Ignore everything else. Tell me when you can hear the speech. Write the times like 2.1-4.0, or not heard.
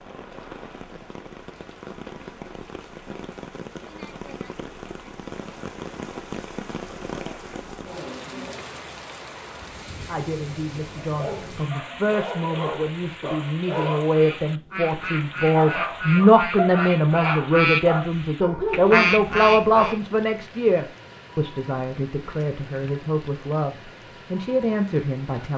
10.1-25.5.